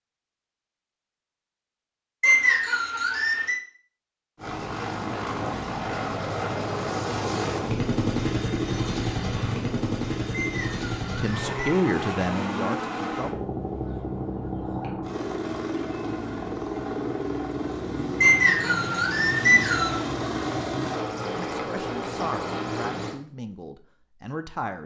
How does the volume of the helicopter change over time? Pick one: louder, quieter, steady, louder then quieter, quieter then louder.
steady.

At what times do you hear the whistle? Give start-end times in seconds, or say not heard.
2.2-3.6, 10.3-11.6, 18.2-20.0.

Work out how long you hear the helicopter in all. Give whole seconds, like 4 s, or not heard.
19 s.